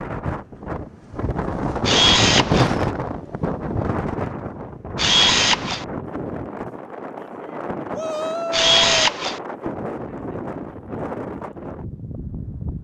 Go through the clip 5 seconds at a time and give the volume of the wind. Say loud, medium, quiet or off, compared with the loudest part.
loud, medium, medium.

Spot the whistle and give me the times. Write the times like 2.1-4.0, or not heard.
not heard.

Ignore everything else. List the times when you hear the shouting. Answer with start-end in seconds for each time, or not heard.
7.9-9.1.